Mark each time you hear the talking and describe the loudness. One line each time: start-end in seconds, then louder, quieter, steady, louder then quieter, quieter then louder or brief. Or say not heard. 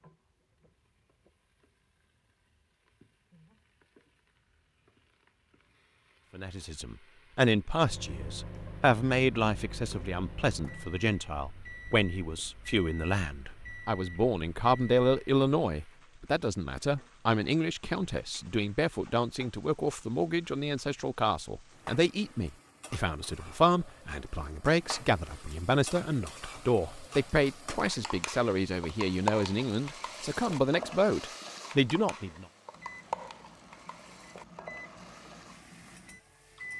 6.3-32.5 steady.